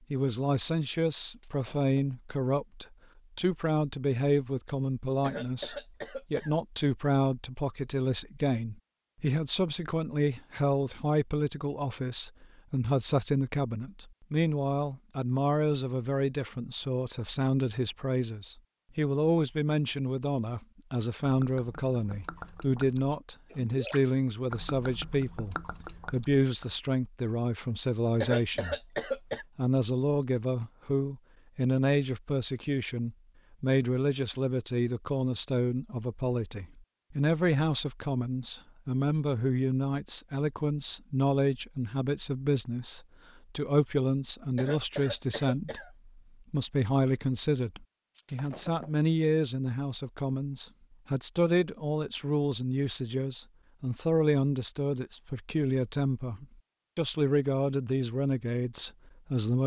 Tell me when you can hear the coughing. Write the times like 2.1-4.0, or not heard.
5.2-6.5, 28.2-29.4, 44.5-45.9.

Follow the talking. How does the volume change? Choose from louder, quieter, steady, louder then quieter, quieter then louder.
steady.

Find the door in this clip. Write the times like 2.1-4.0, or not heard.
not heard.